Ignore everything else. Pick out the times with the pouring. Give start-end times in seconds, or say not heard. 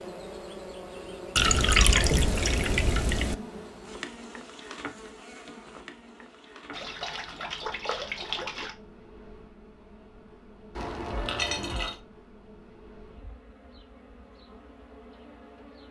1.4-3.4, 6.7-8.8, 10.8-12.0.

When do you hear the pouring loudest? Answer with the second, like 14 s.
2 s.